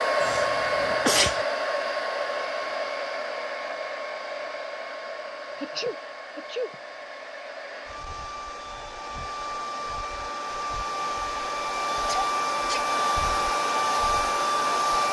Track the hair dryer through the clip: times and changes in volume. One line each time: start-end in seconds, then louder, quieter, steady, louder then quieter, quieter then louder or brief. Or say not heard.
0.0-15.0 quieter then louder.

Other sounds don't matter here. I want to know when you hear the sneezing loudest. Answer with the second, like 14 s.
1 s.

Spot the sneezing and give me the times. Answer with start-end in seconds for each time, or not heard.
0.2-1.4, 5.5-6.8, 12.1-12.8.